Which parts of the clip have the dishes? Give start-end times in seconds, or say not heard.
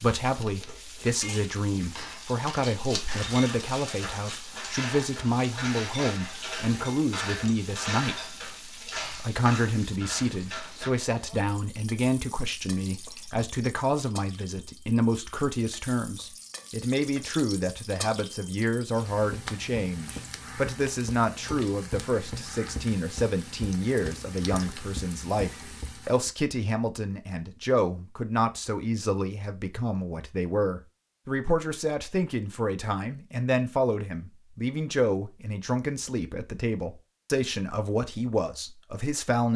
0.5-10.9.